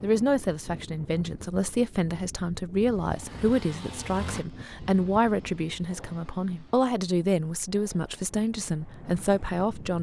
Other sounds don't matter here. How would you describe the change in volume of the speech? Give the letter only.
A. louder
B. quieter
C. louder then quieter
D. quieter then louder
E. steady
E.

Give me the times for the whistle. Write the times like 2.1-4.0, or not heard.
not heard.